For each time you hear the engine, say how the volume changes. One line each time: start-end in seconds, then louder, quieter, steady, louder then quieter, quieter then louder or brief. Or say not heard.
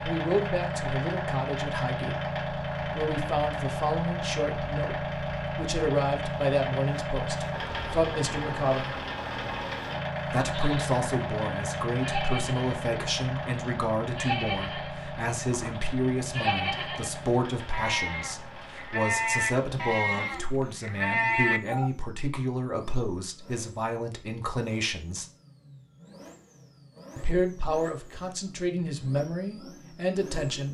0.0-30.6 quieter.